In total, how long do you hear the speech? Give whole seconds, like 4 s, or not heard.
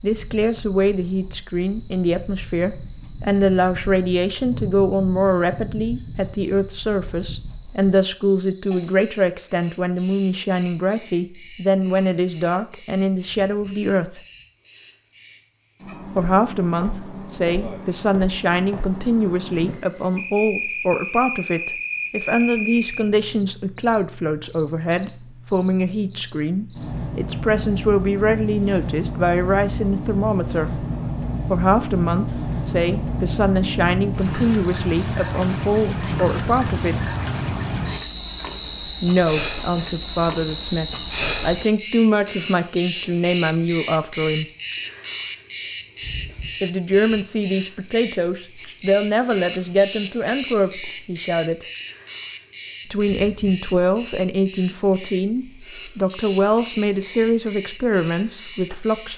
51 s.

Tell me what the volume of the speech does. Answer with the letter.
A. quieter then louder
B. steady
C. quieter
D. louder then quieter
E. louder
B.